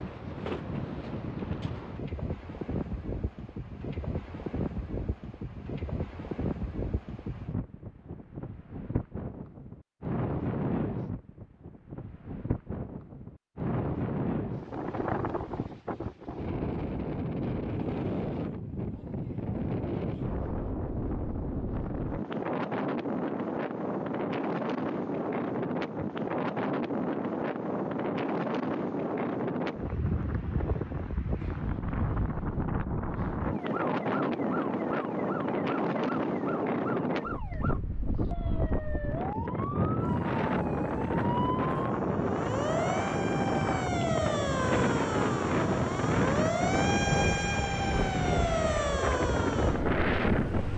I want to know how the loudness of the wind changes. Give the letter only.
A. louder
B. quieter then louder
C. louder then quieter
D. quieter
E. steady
A.